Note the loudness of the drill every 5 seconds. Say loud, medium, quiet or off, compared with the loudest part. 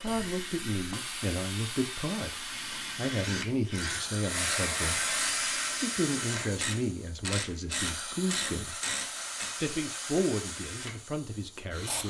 loud, loud, medium.